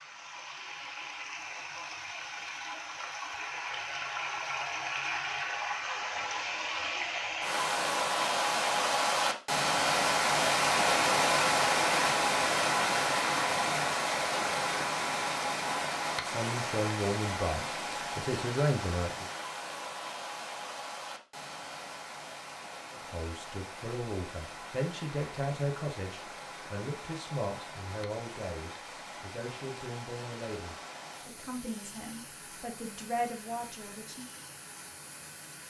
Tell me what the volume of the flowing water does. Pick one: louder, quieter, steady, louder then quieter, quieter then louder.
louder then quieter.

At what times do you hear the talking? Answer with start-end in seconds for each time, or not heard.
16.2-19.2, 22.9-34.2.